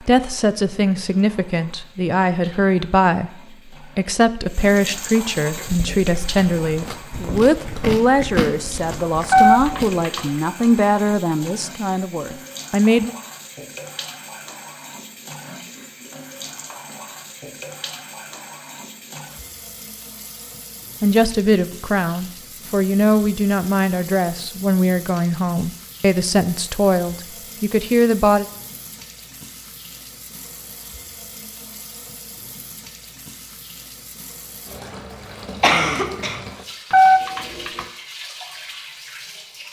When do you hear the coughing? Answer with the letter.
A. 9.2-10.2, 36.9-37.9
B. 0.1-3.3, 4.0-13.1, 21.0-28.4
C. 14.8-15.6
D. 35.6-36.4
D.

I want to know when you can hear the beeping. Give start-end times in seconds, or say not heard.
9.2-10.2, 36.9-37.9.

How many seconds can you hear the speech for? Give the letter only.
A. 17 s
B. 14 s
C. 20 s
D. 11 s
C.